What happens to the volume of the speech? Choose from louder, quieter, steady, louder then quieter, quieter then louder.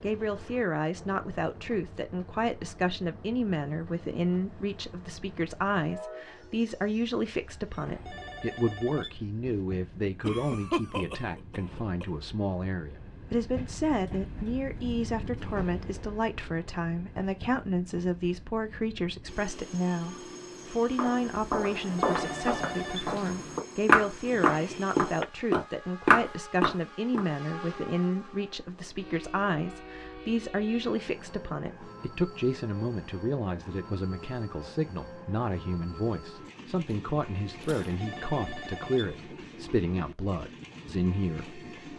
steady.